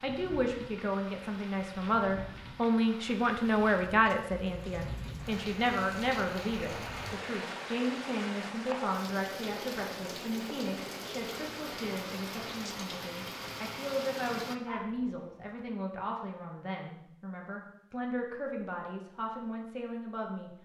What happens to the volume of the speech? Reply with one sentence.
The loudness of the speech goes down.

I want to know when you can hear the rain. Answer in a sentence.
You can hear the rain from 0.0 to 14.6 s.